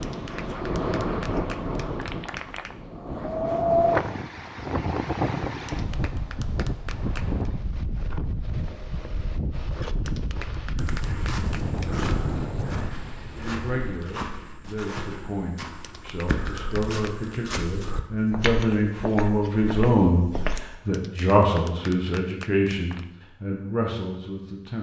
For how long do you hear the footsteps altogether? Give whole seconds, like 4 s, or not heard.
10 s.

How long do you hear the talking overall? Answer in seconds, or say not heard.
11 s.